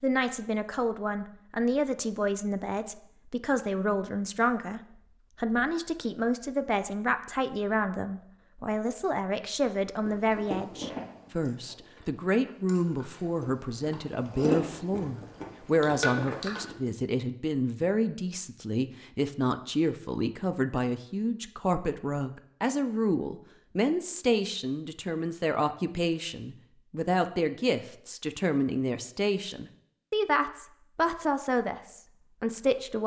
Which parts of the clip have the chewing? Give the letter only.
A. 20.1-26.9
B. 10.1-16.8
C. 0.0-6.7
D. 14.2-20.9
B.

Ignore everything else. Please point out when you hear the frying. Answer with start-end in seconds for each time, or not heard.
not heard.